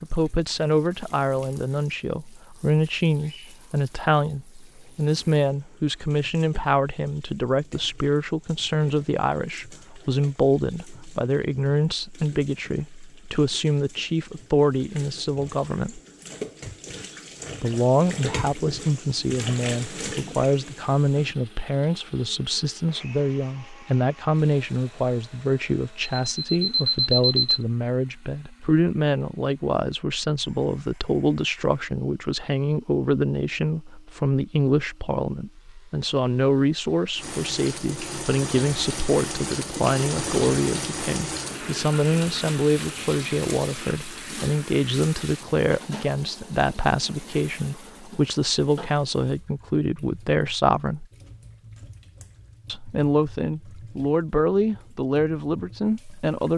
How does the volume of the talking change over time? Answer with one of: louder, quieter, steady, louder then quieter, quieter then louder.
steady.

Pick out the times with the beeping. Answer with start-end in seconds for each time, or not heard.
26.2-27.6.